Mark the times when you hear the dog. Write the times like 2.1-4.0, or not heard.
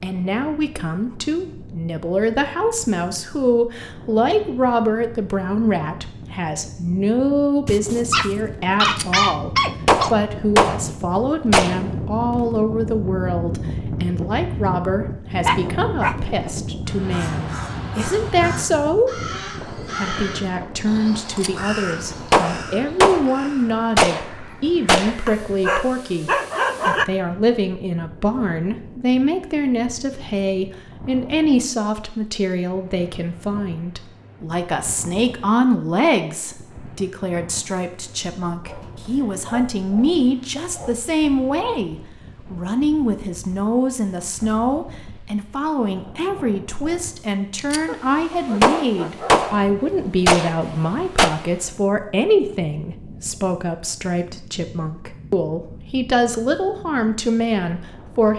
7.7-10.2, 15.4-16.5, 25.2-27.1, 38.6-41.1, 47.9-49.5.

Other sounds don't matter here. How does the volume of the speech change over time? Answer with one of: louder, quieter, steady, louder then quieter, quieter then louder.
steady.